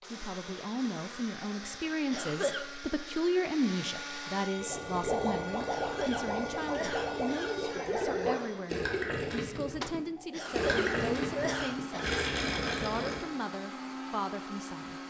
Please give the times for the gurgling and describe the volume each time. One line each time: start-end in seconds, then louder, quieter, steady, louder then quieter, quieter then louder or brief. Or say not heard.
4.5-13.2 steady.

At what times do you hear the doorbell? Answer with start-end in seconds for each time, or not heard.
not heard.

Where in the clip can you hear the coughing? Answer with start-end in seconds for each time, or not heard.
2.1-2.6, 5.7-7.6, 10.3-12.2.